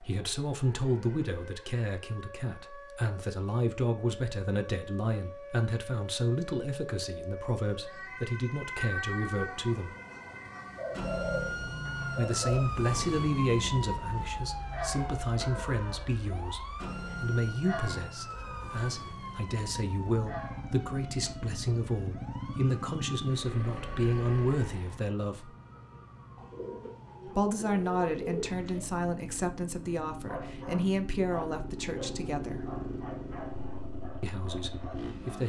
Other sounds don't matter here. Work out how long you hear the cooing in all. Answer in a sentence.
You can hear the cooing for 4 seconds altogether.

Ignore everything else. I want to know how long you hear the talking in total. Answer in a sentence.
You can hear the talking for 30 seconds altogether.